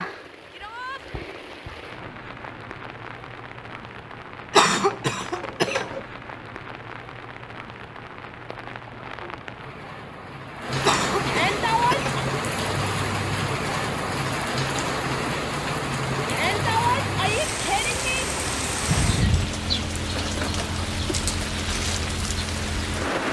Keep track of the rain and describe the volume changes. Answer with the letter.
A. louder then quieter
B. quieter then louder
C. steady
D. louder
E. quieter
D.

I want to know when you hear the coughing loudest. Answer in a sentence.
The volume of the coughing peaks at 5 seconds.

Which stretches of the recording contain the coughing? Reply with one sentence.
You can hear the coughing from 4.5 to 6.0 s, from 10.8 to 12.3 s and from 18.9 to 19.5 s.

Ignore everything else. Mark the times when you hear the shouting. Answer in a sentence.
You can hear the shouting from 0.5 to 1.1 s, from 11.2 to 12.1 s and from 16.2 to 18.2 s.